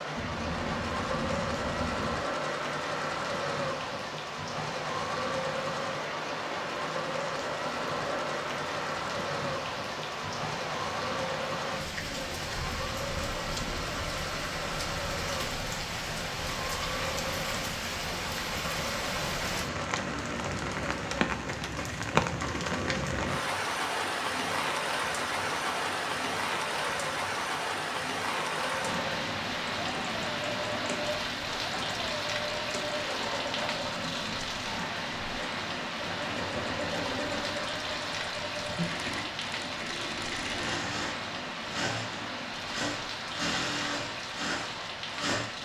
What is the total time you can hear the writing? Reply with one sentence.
The writing can be heard for 2 seconds in total.